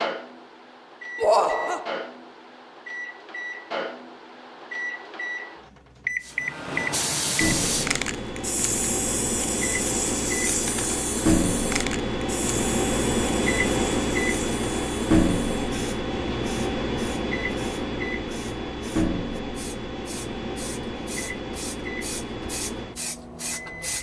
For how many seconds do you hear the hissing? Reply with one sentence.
The hissing can be heard for 18 seconds in total.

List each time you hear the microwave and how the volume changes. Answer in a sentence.
You can hear the microwave from 0.0 to 23.9 s, getting louder then quieter.